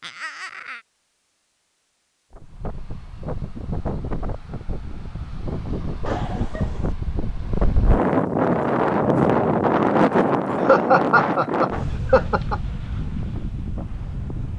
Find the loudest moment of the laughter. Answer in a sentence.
The volume of the laughter peaks at 11 seconds.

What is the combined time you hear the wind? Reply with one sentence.
The wind can be heard for 12 seconds in total.